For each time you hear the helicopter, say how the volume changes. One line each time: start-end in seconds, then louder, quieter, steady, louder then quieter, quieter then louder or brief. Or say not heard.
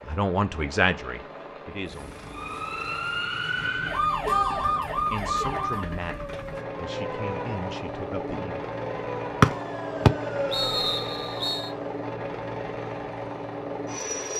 0.0-14.3 louder.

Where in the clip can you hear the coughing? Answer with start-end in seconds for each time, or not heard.
not heard.